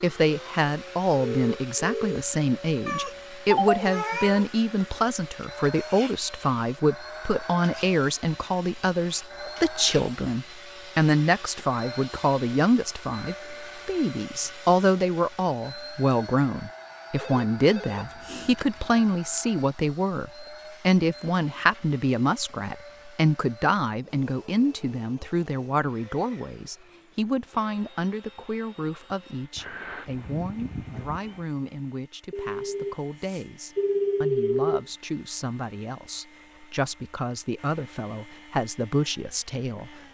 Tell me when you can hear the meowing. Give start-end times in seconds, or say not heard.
2.9-4.5, 18.1-19.1, 29.6-31.4.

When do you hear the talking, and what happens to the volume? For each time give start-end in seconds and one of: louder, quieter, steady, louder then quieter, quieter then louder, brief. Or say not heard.
0.0-40.0 quieter.